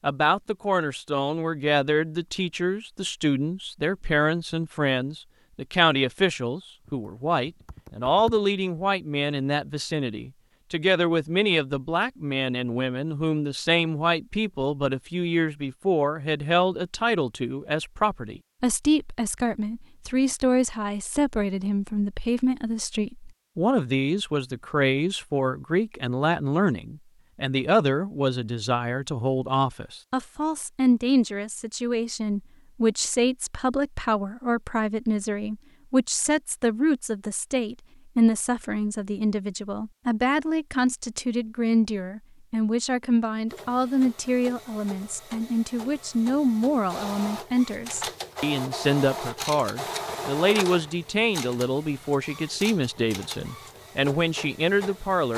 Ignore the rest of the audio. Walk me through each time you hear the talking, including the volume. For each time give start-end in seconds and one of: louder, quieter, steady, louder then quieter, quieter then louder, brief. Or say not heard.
0.0-55.3 steady.